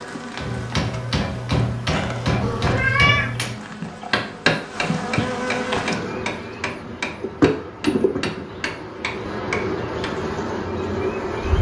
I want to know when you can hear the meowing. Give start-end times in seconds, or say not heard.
2.4-3.4.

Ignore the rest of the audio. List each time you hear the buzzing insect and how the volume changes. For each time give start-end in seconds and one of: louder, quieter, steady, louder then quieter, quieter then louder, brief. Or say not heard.
0.0-11.5 louder.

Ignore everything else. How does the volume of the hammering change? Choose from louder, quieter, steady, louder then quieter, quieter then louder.
quieter.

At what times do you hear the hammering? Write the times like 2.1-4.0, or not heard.
0.3-10.2.